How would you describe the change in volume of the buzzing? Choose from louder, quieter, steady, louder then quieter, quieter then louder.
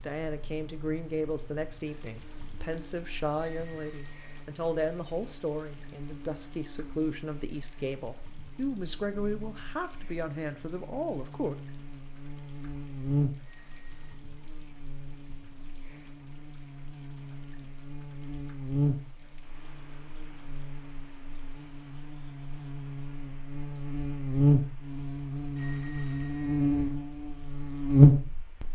louder.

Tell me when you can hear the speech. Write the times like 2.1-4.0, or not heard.
0.0-11.6.